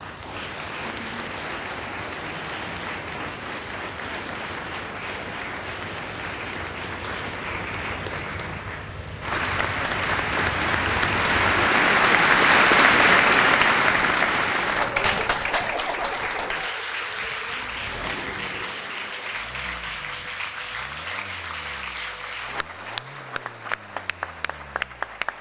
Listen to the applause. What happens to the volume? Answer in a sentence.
The loudness of the applause goes up, then down.